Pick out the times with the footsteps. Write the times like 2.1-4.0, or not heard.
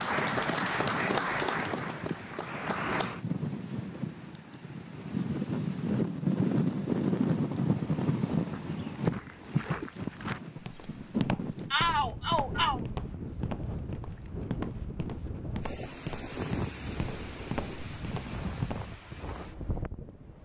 8.7-19.2.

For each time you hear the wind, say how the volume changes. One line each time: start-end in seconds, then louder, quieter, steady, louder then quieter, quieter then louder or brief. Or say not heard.
0.0-20.3 louder then quieter.